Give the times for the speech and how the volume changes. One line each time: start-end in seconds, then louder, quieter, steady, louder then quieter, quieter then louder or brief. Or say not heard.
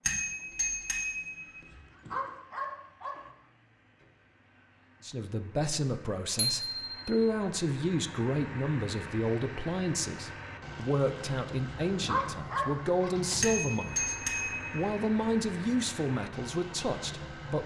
5.0-17.6 steady.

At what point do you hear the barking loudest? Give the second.
12 s.